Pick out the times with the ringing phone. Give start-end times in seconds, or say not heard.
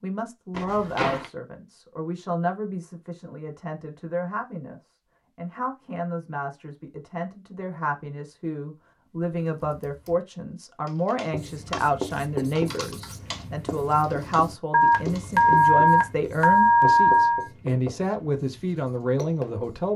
0.6-1.2, 14.7-17.4.